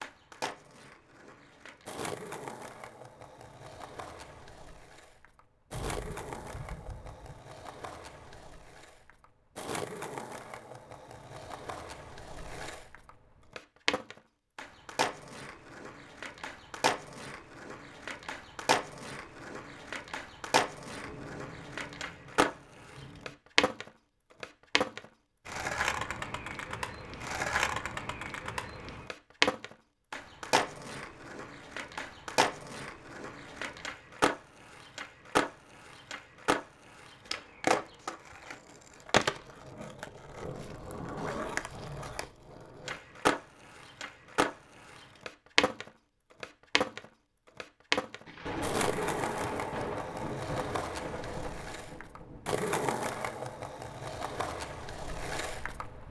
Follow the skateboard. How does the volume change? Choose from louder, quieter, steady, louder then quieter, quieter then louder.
louder.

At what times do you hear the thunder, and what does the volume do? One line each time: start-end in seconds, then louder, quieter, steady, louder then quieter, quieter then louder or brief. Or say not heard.
5.7-7.4 brief
20.9-23.4 brief
48.2-52.5 quieter.